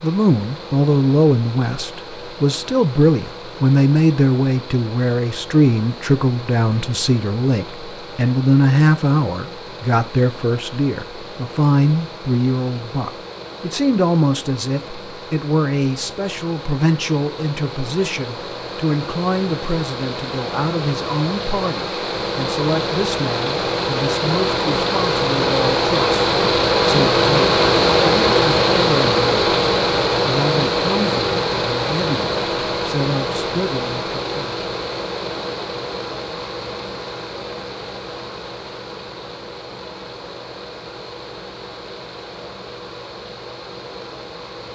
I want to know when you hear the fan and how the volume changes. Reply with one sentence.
You can hear the fan from 0.0 to 44.7 s, getting louder then quieter.